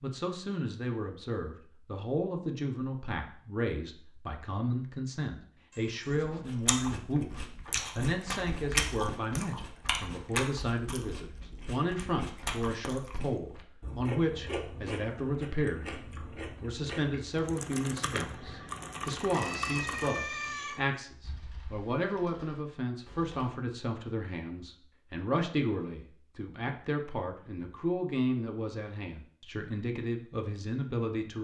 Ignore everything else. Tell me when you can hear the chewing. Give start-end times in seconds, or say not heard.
6.5-17.4.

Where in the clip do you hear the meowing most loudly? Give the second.
20 s.